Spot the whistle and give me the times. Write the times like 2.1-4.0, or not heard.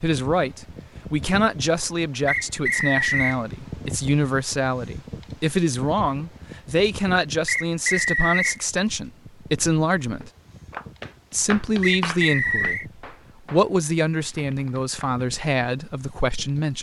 2.2-3.4, 7.5-8.6, 11.8-12.8.